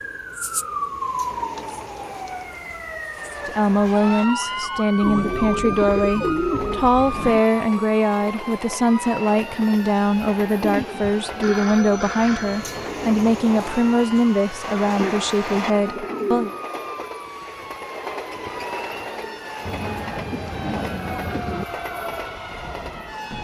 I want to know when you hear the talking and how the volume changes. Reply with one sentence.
You can hear the talking from 3.5 to 16.5 s, at a steady volume.